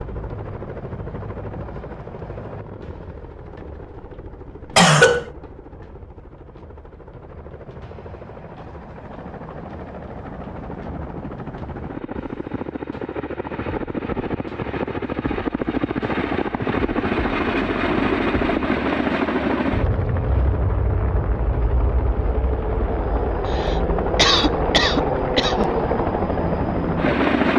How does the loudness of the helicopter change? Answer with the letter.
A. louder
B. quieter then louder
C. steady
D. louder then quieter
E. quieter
A.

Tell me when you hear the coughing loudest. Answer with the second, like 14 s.
5 s.